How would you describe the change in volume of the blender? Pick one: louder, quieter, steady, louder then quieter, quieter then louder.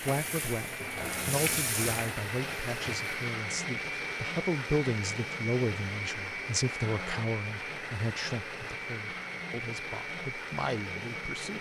steady.